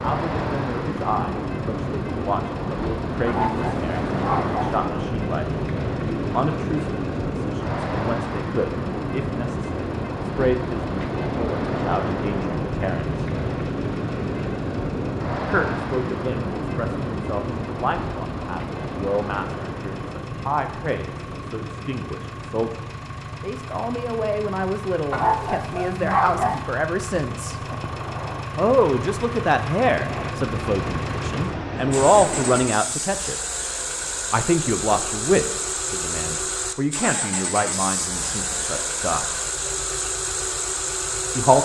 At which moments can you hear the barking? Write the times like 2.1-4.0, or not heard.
3.2-4.8, 25.1-26.6.